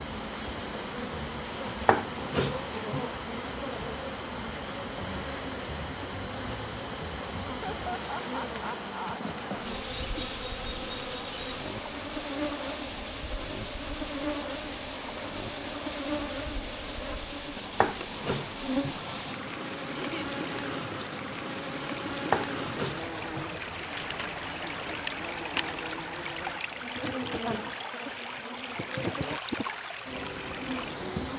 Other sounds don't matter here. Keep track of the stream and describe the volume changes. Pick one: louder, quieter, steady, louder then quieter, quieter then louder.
steady.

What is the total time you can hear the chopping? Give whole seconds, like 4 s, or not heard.
4 s.